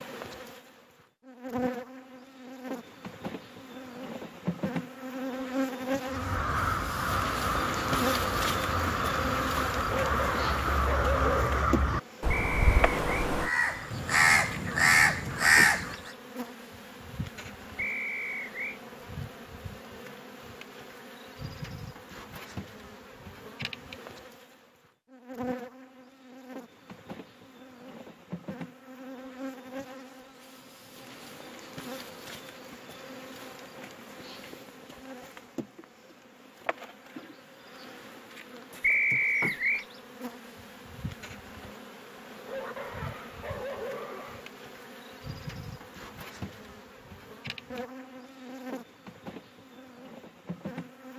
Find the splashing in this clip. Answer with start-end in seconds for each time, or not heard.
not heard.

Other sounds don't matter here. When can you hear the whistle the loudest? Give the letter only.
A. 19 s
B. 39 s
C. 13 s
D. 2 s
B.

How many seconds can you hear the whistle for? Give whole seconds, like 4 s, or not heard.
3 s.